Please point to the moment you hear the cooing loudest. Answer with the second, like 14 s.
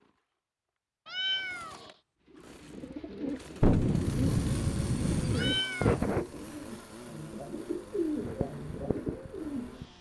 6 s.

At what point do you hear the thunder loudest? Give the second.
4 s.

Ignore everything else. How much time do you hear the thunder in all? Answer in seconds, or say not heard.
2 s.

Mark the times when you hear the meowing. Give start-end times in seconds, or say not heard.
1.1-1.9, 5.3-6.0.